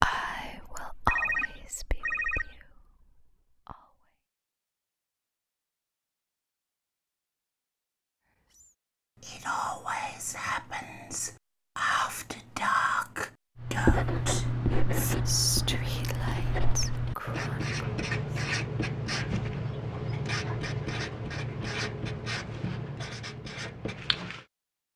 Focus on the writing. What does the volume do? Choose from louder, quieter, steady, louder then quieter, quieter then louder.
quieter.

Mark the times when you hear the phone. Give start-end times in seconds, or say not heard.
1.1-2.5.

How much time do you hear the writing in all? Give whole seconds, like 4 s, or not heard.
11 s.